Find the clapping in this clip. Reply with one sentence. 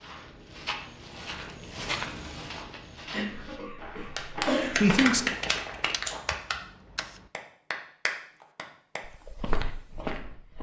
The clapping can be heard from 4.0 to 9.0 s.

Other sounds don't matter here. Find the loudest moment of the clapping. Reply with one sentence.
The volume of the clapping peaks at 5 seconds.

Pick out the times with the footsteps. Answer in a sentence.
You can hear the footsteps from 0.0 to 6.2 s and from 9.1 to 10.5 s.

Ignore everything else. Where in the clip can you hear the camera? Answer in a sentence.
The camera can be heard from 5.9 to 7.3 s.